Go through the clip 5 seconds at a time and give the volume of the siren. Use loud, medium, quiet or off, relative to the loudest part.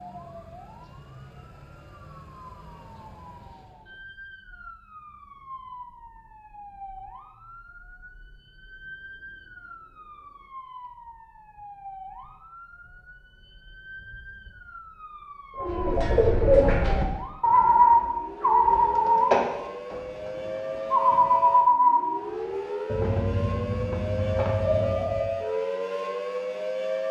quiet, quiet, quiet, medium, loud, loud.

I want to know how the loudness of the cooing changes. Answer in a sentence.
The volume of the cooing goes down.